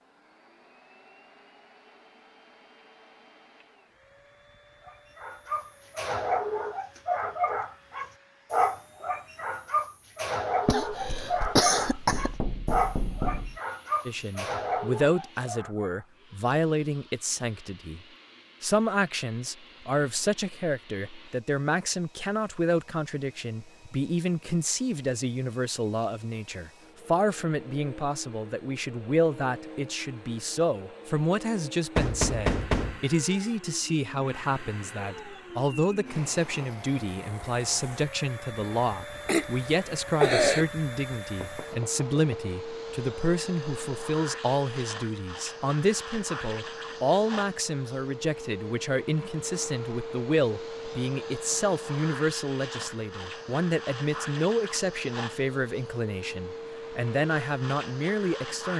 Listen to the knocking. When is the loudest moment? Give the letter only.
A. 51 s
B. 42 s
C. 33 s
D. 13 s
C.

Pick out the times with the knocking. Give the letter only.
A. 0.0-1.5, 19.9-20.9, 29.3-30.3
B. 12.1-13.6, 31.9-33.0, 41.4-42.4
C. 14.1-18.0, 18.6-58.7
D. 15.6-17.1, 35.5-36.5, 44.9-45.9
B.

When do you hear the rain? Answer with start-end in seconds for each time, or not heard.
not heard.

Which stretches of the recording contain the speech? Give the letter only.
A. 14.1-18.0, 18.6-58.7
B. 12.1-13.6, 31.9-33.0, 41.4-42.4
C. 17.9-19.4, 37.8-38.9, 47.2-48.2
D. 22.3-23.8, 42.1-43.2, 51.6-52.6
A.